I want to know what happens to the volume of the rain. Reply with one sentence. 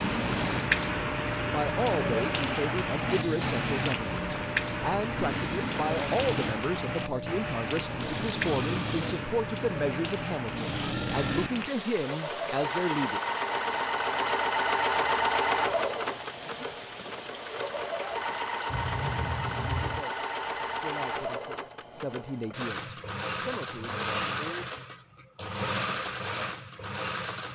The volume of the rain goes down.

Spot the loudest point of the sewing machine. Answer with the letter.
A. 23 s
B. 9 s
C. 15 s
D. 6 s
C.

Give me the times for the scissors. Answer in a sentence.
You can hear the scissors from 18.6 to 20.1 s.